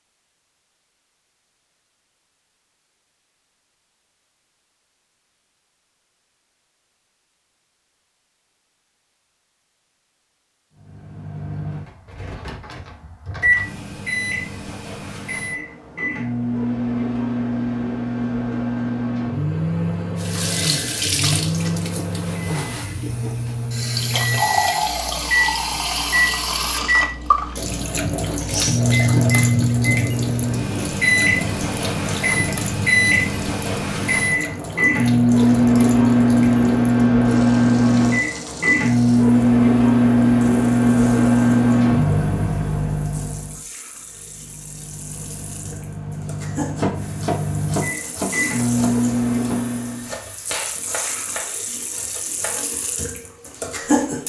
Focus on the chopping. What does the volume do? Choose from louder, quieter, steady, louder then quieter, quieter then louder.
quieter.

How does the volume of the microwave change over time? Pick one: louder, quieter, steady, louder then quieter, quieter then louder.
louder then quieter.